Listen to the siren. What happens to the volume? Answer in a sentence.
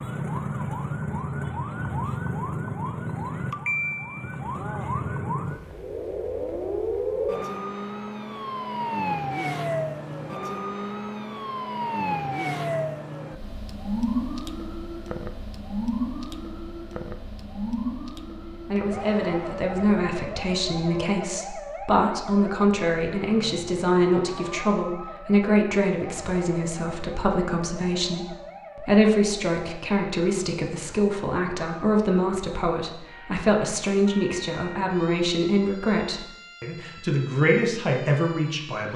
The loudness of the siren goes down.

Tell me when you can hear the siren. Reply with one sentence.
The siren can be heard from 0.0 to 38.9 s.